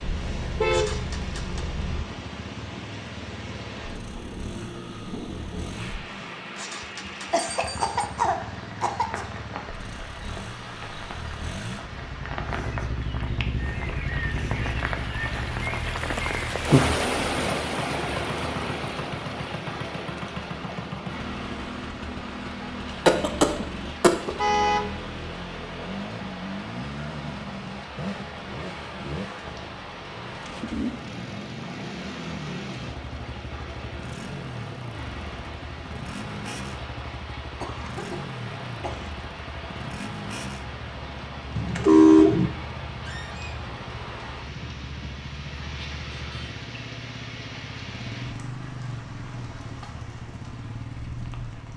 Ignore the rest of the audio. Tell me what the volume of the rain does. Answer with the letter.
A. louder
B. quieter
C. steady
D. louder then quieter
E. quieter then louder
D.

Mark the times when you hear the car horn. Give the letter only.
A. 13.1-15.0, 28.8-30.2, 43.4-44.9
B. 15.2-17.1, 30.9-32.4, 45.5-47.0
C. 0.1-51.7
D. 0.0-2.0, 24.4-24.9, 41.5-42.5
D.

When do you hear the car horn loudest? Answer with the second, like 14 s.
42 s.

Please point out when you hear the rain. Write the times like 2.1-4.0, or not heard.
0.0-51.7.